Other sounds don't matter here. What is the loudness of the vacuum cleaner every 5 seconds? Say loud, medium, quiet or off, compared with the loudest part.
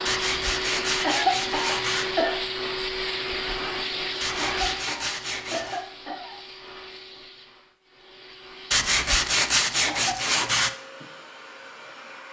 loud, quiet, quiet.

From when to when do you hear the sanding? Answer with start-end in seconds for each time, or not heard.
0.1-2.0, 4.2-5.8, 8.7-10.7.